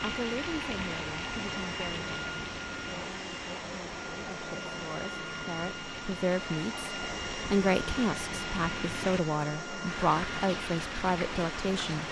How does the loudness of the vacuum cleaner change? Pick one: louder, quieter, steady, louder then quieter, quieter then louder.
steady.